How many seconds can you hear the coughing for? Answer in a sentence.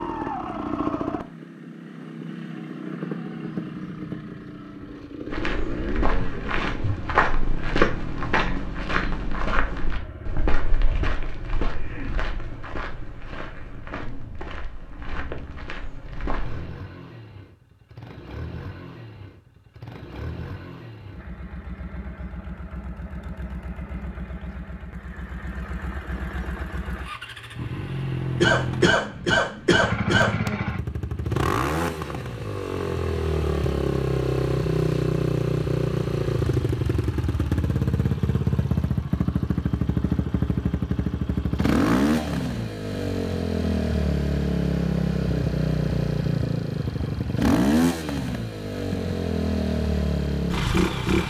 The coughing can be heard for 2 seconds in total.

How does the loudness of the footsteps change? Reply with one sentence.
The volume of the footsteps goes down.